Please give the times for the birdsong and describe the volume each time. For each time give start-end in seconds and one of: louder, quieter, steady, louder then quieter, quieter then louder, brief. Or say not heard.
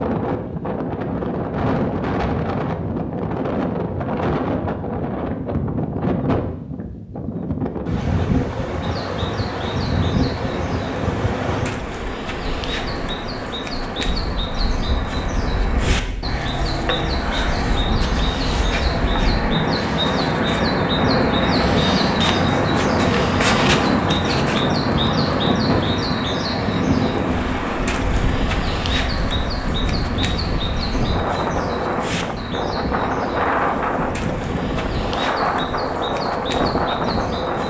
8.8-37.6 louder then quieter.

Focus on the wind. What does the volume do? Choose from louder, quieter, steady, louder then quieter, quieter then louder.
steady.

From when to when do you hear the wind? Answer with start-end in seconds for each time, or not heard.
0.0-37.6.